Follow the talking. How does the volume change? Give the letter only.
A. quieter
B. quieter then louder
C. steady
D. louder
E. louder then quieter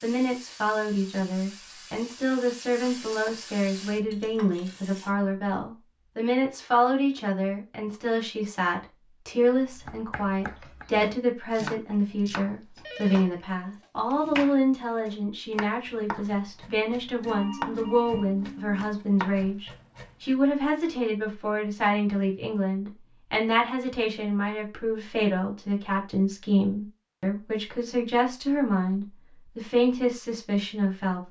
C.